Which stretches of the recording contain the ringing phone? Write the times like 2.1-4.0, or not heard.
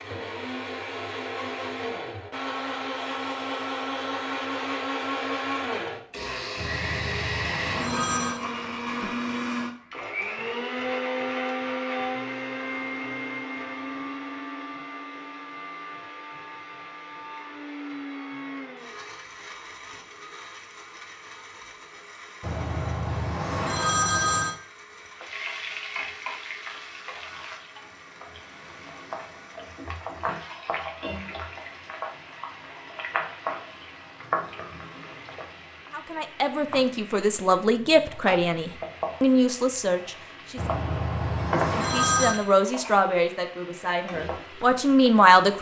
6.5-8.4, 22.4-24.6, 40.5-42.4.